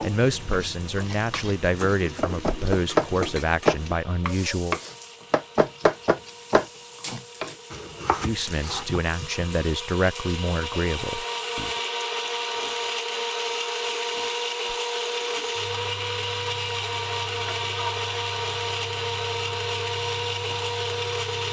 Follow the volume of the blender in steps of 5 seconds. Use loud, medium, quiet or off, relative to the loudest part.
quiet, quiet, loud, loud, loud.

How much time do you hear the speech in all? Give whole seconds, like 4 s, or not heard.
8 s.